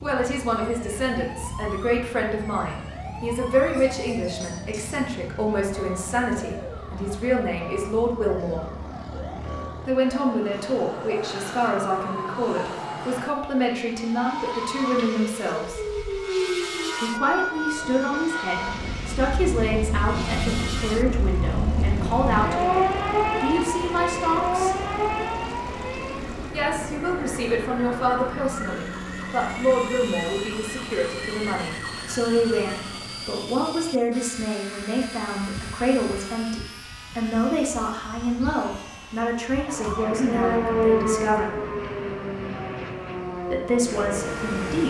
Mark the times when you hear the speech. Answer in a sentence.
You can hear the speech from 0.0 to 8.7 s, from 9.8 to 15.8 s, from 17.0 to 24.8 s, from 26.5 to 41.5 s and from 43.5 to 44.8 s.